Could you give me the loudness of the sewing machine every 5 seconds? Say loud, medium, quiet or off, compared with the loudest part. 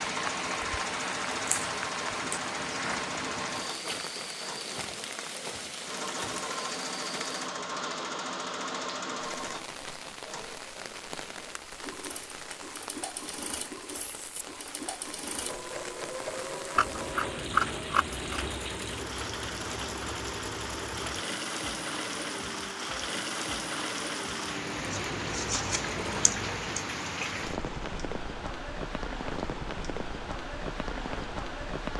loud, loud, medium, loud, loud, loud, off.